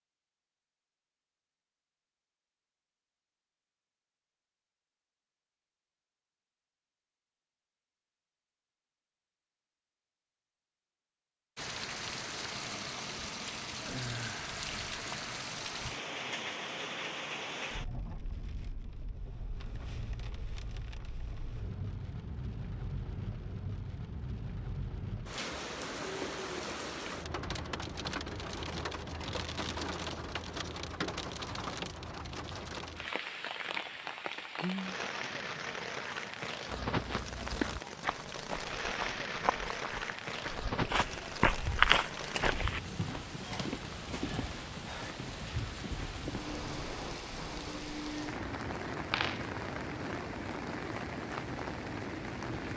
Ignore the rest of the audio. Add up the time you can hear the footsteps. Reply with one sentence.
You can hear the footsteps for 6 seconds altogether.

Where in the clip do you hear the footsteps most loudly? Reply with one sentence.
The loudest moment of the footsteps is at 42 seconds.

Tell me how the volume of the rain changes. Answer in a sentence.
The loudness of the rain stays about the same.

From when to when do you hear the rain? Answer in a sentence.
You can hear the rain from 11.6 to 52.7 s.